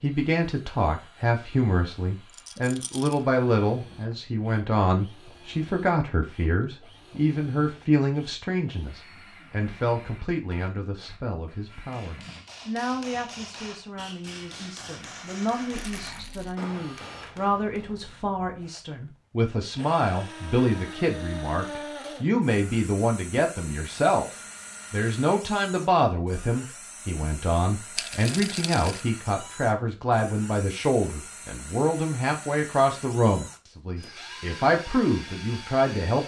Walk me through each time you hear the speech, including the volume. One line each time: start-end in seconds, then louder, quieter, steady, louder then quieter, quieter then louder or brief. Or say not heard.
0.0-24.3 quieter then louder
24.9-36.2 steady.